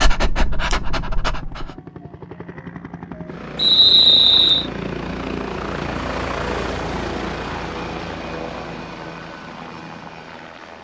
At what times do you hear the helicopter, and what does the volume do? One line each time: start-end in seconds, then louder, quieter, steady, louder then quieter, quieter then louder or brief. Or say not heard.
0.2-10.8 louder then quieter.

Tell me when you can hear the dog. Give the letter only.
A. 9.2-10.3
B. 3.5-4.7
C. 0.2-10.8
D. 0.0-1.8
D.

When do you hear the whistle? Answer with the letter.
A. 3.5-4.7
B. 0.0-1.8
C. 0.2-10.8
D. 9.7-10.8
A.